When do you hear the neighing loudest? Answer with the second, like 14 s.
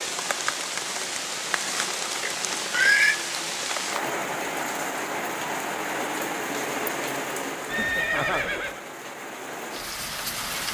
3 s.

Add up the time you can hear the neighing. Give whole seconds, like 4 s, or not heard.
2 s.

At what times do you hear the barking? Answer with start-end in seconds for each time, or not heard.
not heard.